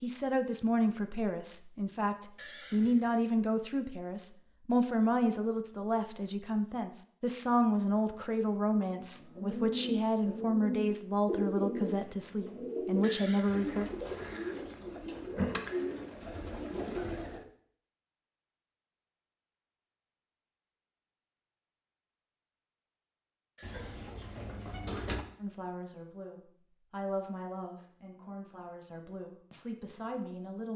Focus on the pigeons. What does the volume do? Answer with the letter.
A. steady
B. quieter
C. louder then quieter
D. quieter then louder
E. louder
A.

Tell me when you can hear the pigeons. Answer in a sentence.
You can hear the pigeons from 8.8 to 17.4 s.